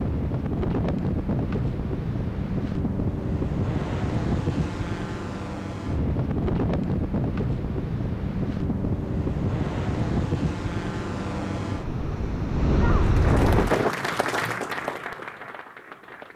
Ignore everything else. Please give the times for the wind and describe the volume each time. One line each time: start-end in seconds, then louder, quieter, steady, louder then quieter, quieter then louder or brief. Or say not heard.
0.0-13.9 steady.